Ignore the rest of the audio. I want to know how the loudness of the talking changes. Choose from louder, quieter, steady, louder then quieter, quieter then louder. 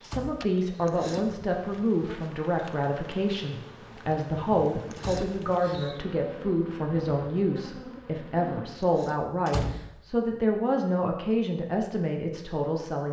steady.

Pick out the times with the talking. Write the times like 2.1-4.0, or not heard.
0.0-13.0.